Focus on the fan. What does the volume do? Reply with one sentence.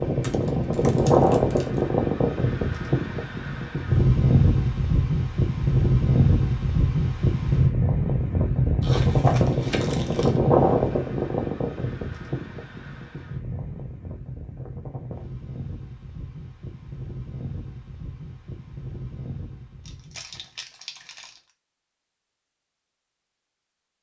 The volume of the fan goes down.